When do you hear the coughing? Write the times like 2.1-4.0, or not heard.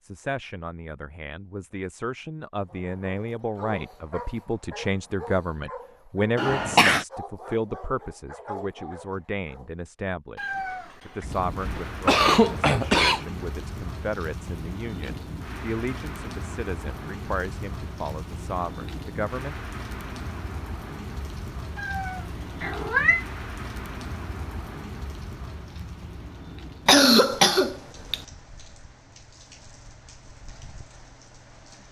6.3-7.0, 11.2-13.2, 26.9-28.2.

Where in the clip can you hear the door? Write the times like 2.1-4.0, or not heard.
not heard.